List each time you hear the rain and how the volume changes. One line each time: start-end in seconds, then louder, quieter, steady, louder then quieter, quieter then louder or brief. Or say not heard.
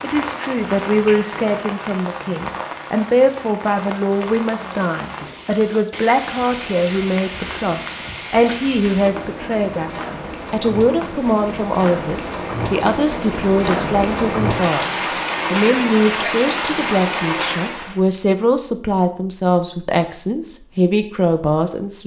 0.0-18.0 louder.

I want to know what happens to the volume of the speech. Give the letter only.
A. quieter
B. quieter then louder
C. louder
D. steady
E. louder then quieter
D.